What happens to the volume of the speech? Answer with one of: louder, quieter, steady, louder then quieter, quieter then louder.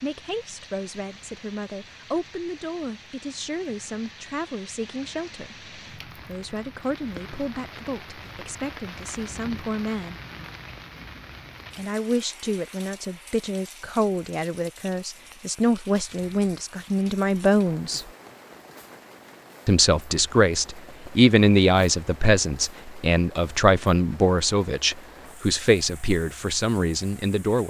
louder.